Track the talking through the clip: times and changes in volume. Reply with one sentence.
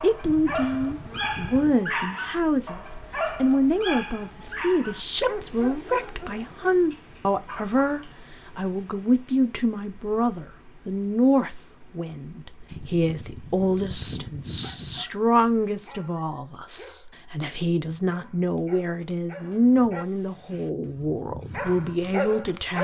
The talking can be heard briefly from 0.0 to 2.8 s; and from 3.4 to 22.7 s, at a steady volume.